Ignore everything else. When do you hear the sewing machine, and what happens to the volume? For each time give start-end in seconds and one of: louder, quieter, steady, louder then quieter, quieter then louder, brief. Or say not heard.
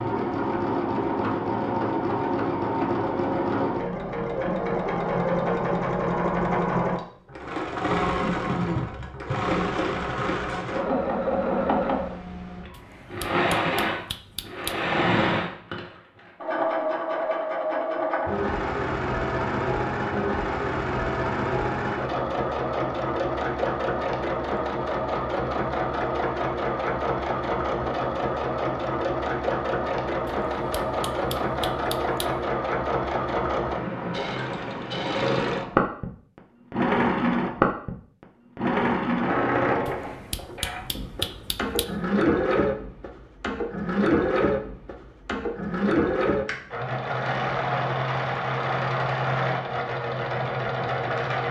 0.0-51.4 steady.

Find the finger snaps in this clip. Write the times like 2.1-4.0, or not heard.
12.7-14.8, 30.2-32.2, 39.9-41.9.